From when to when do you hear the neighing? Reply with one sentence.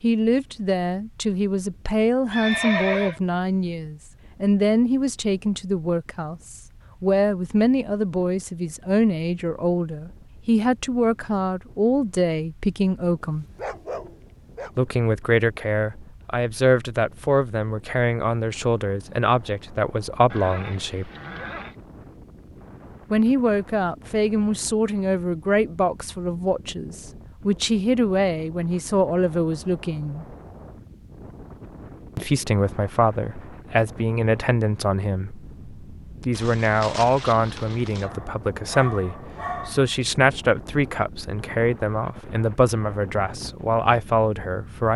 You can hear the neighing from 2.3 to 3.2 s, from 20.3 to 21.8 s and from 36.4 to 38.0 s.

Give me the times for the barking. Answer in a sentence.
The barking can be heard from 13.2 to 14.7 s and from 38.0 to 40.0 s.